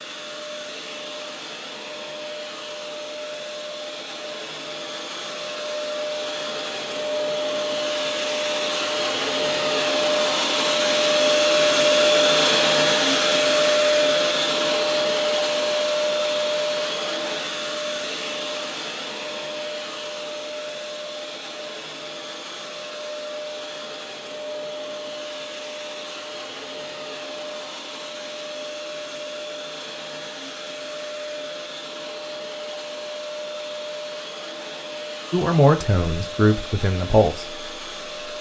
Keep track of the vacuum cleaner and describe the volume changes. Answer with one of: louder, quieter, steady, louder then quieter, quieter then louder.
louder then quieter.